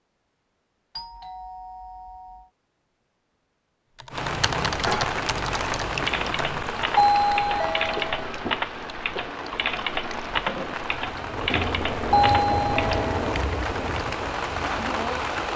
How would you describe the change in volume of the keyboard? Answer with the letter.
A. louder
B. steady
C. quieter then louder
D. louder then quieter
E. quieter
B.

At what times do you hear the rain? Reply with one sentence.
You can hear the rain from 4.1 to 15.5 s.